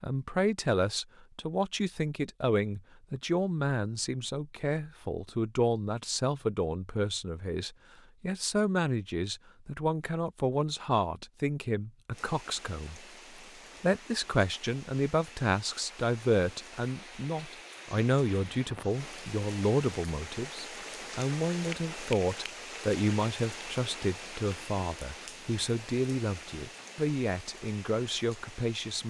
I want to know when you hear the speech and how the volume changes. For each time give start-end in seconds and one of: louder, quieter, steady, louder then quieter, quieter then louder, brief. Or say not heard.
0.0-13.0 steady
13.8-29.0 steady.